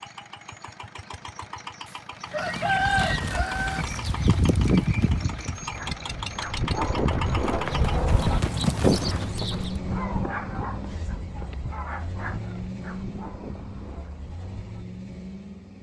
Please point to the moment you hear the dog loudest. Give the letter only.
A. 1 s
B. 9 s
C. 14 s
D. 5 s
B.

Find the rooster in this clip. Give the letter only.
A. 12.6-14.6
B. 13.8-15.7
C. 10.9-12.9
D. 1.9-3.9
D.